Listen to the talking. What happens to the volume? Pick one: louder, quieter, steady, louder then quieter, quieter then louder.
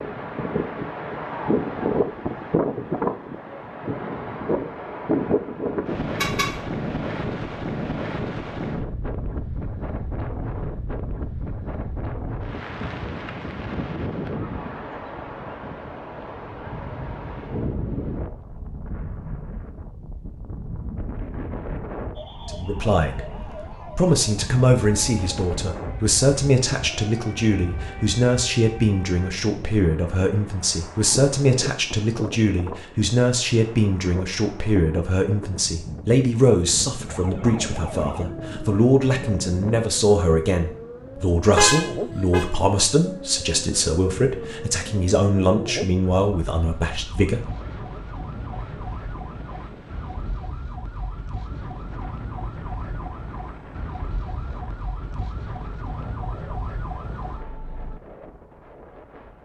steady.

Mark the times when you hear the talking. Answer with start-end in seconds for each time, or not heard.
22.4-47.5.